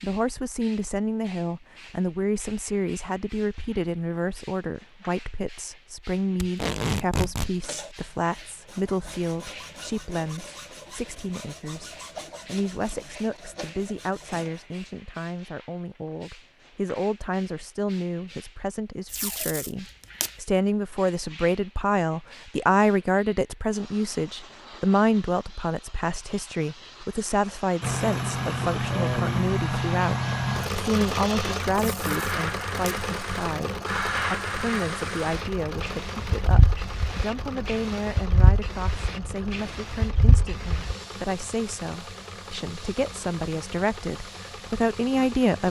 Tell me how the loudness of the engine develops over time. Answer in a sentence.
The loudness of the engine goes down.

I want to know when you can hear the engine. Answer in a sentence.
You can hear the engine from 27.8 to 45.6 s.